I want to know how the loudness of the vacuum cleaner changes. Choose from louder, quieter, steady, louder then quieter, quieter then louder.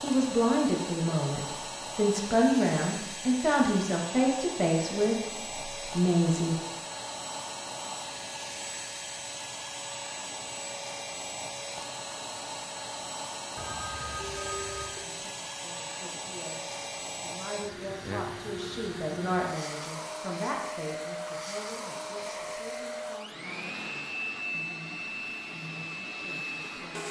steady.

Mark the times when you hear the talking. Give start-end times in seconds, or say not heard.
0.0-6.6, 15.0-27.0.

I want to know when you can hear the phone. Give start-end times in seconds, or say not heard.
13.6-15.1.